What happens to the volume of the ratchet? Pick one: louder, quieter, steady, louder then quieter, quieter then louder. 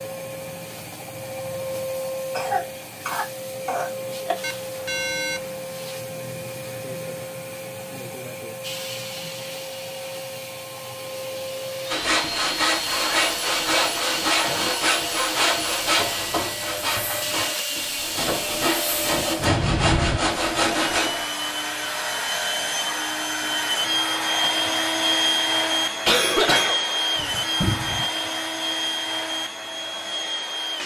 louder.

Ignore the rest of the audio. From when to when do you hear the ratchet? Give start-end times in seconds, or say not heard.
8.6-19.4.